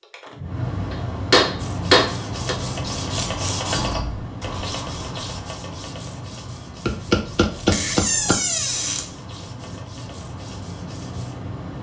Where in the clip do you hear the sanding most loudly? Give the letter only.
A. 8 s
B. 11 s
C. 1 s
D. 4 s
D.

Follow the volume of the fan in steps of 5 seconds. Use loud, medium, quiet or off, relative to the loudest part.
loud, medium, loud.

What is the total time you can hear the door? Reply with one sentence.
The door can be heard for 2 seconds in total.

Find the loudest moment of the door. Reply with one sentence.
The volume of the door peaks at 8 seconds.